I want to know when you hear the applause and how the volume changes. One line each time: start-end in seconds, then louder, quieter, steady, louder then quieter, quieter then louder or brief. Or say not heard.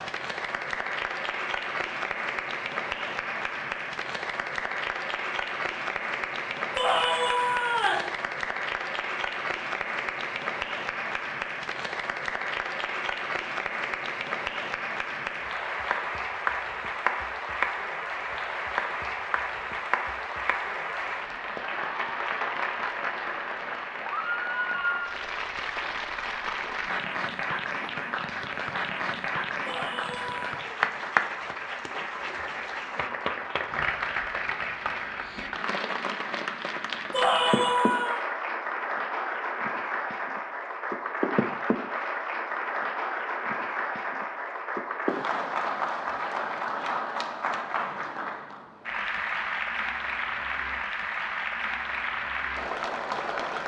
0.0-53.6 steady.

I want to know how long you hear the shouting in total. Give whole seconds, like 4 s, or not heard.
3 s.